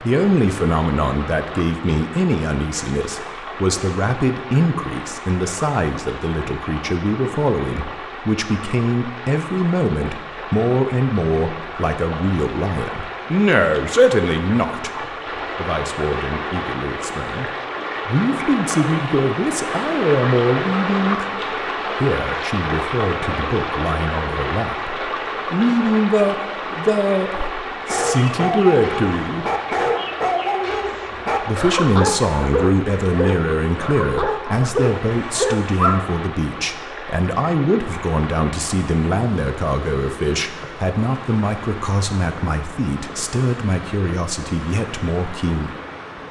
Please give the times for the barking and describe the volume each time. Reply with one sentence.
The barking can be heard from 27.3 to 36.1 s, at a steady volume.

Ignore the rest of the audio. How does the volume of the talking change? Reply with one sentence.
The loudness of the talking stays about the same.